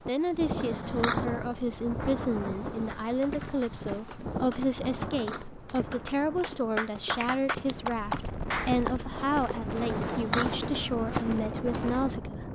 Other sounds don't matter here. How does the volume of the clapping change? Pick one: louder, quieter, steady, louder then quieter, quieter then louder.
louder.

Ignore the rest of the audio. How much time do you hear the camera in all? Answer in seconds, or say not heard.
2 s.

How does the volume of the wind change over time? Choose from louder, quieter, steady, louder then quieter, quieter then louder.
quieter then louder.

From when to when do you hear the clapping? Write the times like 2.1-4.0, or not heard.
3.0-8.8.